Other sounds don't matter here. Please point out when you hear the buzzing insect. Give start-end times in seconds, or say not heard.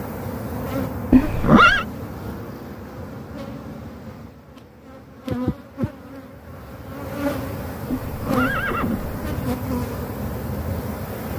0.0-11.3.